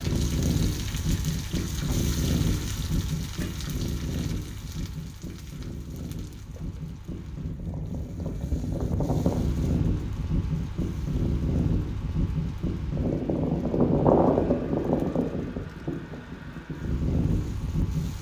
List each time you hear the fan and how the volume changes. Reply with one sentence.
The fan can be heard from 0.0 to 18.1 s, getting quieter then louder.